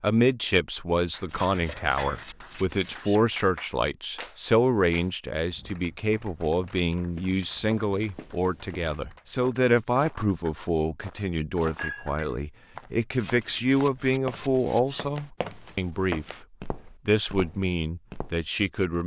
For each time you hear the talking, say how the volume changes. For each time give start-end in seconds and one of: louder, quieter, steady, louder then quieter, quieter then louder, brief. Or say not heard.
0.0-16.2 steady
17.1-19.0 brief.